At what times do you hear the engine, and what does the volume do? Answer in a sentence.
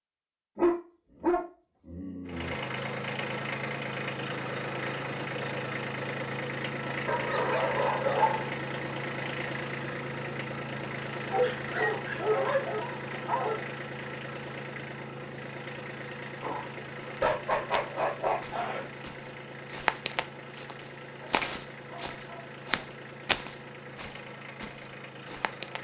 You can hear the engine from 2.2 to 25.7 s, getting quieter.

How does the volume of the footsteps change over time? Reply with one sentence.
The loudness of the footsteps goes up, then down.